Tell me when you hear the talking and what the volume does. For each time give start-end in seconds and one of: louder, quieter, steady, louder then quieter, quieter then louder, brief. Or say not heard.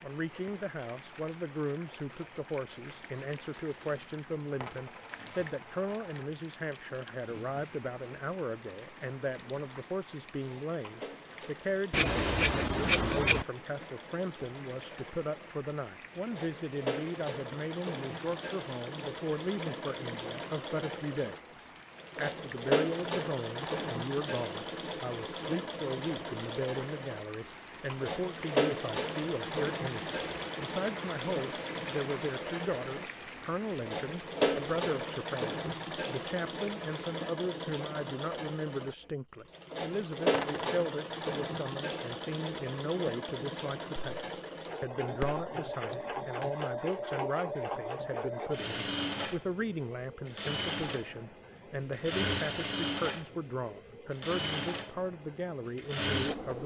0.0-56.6 steady.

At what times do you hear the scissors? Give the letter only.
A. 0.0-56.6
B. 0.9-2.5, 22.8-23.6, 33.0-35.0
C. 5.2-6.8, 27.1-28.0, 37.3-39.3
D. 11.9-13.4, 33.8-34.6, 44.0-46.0
D.